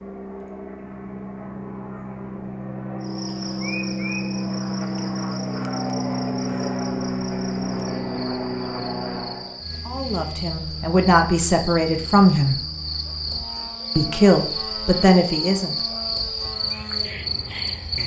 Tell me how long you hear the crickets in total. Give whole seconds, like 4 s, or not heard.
15 s.